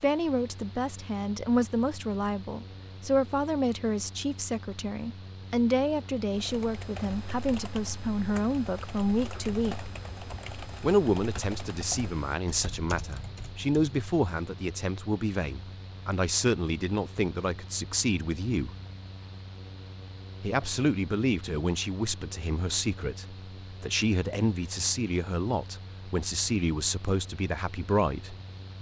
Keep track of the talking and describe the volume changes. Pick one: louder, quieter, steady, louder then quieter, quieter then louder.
steady.